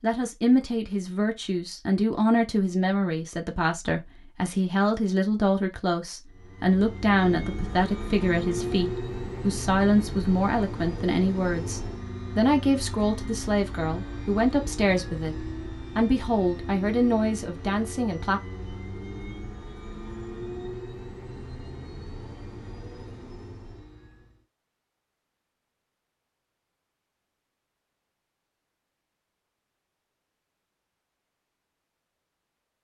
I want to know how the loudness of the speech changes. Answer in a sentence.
The volume of the speech stays about the same.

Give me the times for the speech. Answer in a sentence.
The speech can be heard from 0.0 to 18.4 s.